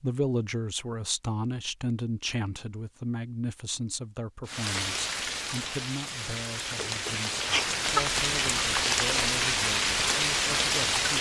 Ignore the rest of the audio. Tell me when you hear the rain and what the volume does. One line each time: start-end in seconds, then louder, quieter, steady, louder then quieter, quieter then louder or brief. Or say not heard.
4.5-11.1 louder.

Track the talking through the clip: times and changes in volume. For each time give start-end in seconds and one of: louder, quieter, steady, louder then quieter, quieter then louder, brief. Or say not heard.
0.0-11.1 quieter.